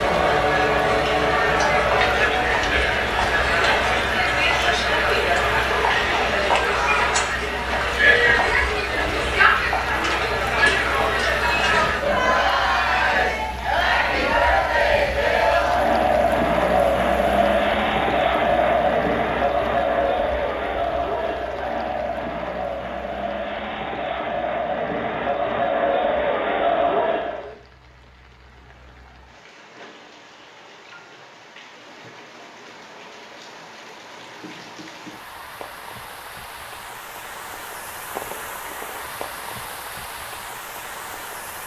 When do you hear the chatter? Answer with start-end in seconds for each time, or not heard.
0.0-27.6.